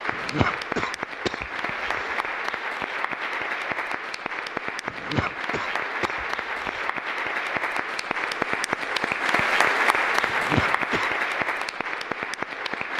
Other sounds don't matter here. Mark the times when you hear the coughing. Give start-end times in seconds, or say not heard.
0.1-2.2, 4.8-6.9, 10.2-11.1.